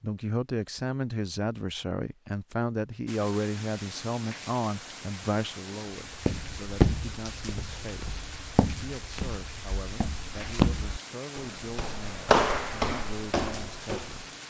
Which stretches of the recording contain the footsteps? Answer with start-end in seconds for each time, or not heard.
6.1-14.2.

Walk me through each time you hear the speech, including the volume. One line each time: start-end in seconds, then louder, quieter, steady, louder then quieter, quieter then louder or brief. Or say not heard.
0.0-14.2 quieter.